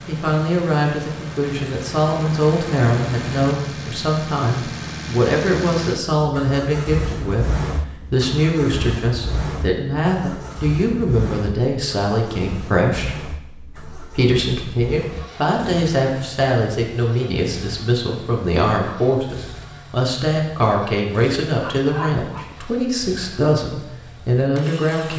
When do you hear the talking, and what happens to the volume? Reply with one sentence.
You can hear the talking from 0.1 to 25.1 s, at a steady volume.